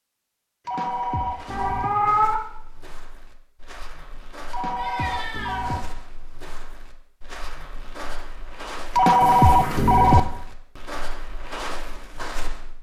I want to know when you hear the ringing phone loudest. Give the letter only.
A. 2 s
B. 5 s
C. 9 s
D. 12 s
C.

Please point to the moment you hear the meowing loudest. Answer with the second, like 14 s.
2 s.